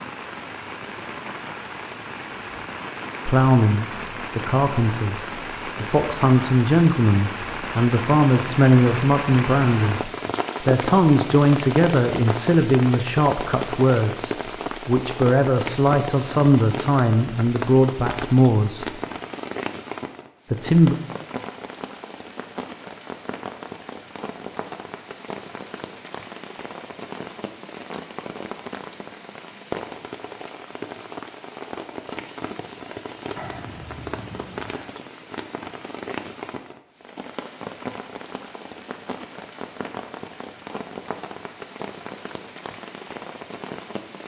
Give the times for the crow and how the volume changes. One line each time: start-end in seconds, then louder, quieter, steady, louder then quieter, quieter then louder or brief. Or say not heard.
not heard.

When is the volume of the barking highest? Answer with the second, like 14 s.
34 s.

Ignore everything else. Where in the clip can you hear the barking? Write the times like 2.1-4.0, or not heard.
33.4-34.9.